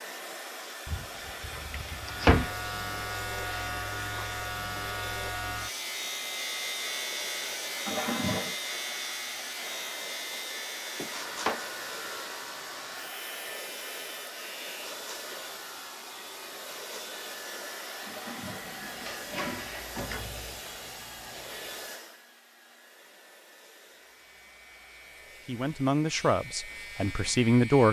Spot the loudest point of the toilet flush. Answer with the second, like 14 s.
8 s.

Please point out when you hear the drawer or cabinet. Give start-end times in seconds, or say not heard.
0.8-2.5, 10.9-11.6, 19.4-20.6.